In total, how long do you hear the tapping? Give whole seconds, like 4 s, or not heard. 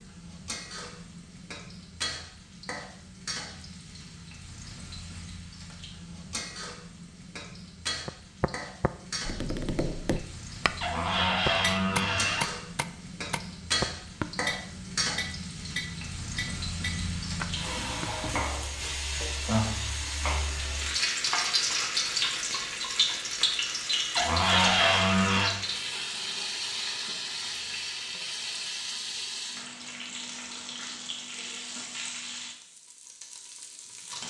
10 s.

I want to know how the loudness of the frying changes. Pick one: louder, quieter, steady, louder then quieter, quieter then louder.
louder then quieter.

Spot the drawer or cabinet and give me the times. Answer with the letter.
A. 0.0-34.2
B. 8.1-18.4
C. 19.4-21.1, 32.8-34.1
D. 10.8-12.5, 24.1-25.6
D.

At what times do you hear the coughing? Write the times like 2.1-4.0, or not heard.
not heard.